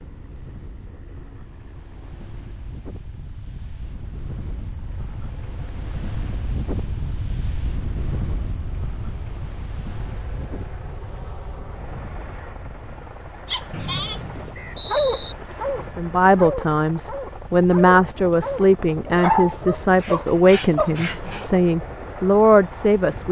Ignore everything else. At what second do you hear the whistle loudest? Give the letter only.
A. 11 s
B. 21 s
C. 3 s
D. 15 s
D.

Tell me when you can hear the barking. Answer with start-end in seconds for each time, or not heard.
13.5-21.4.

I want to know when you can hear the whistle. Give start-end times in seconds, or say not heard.
13.7-15.3.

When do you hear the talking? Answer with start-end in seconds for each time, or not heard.
15.8-23.2.